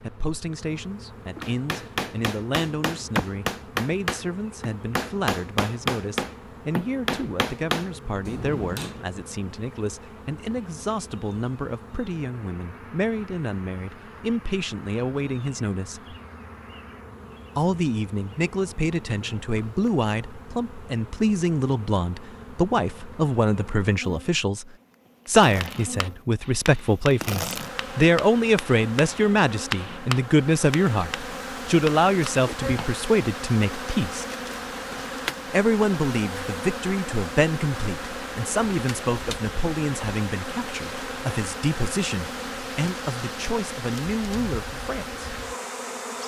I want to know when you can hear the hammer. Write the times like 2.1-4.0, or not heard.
1.4-9.0, 25.6-33.0.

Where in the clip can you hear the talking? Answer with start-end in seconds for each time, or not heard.
0.0-16.1, 17.6-34.2, 35.5-45.2.